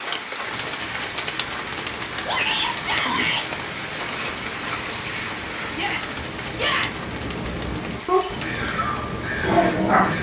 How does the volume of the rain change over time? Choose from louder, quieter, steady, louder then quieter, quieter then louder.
quieter.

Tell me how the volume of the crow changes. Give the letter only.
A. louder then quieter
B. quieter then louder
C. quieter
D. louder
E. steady
D.